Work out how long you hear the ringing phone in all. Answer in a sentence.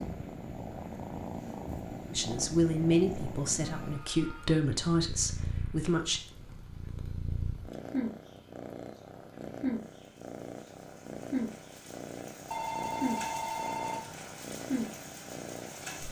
You can hear the ringing phone for 3 seconds altogether.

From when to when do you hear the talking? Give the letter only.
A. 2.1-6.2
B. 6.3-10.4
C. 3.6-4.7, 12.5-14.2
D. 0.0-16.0
A.